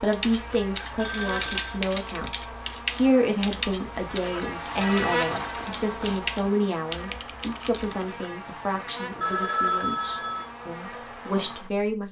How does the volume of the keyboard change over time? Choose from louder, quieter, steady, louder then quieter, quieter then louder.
quieter then louder.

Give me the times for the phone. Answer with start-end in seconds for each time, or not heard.
0.9-1.8, 4.2-6.2, 9.2-10.4.